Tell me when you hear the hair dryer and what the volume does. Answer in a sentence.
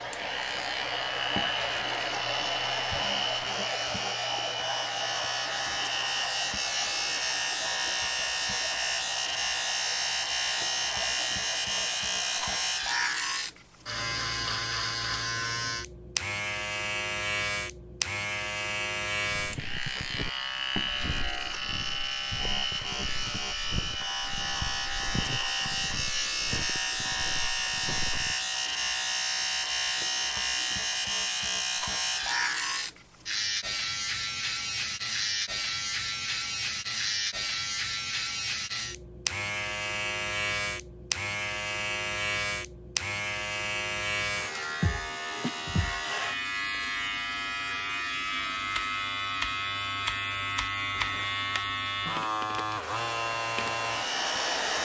You can hear the hair dryer from 0.0 to 12.8 s, getting quieter; and briefly from 52.8 to 54.7 s.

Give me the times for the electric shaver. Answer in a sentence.
You can hear the electric shaver from 0.0 to 54.7 s.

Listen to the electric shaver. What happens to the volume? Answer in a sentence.
The loudness of the electric shaver stays about the same.